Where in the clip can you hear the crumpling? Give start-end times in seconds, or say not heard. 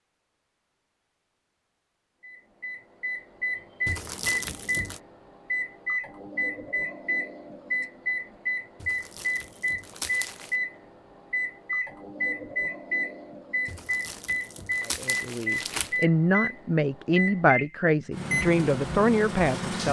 3.9-5.0, 8.8-10.6, 13.7-16.1.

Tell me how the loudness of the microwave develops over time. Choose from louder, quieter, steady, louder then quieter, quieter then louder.
steady.